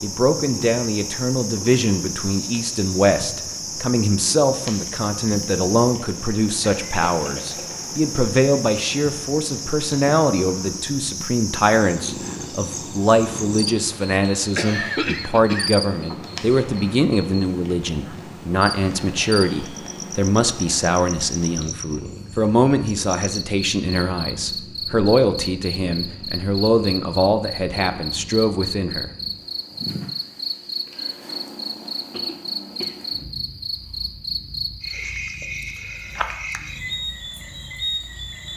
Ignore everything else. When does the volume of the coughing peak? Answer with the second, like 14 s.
15 s.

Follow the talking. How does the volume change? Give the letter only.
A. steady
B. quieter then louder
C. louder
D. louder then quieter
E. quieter
A.